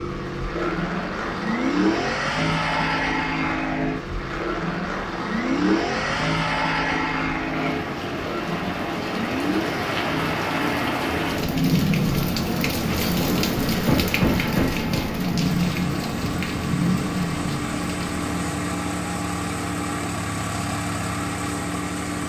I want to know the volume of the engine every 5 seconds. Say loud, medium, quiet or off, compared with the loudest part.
loud, loud, medium, loud, loud.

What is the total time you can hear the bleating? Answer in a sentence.
The bleating can't be heard in this clip.